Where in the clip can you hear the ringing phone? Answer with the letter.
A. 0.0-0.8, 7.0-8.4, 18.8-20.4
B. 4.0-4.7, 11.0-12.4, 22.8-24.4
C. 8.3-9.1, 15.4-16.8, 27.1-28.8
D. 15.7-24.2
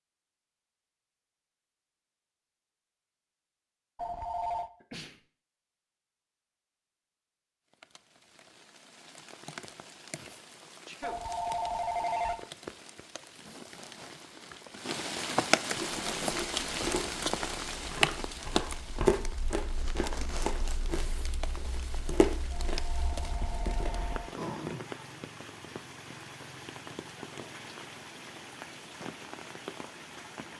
B.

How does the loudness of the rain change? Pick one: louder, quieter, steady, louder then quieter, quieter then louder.
louder then quieter.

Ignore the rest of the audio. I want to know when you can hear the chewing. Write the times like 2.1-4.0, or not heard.
15.7-24.2.